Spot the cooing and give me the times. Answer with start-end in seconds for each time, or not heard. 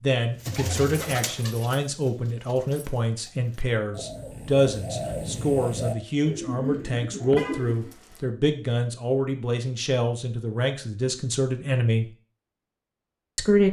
0.3-7.8.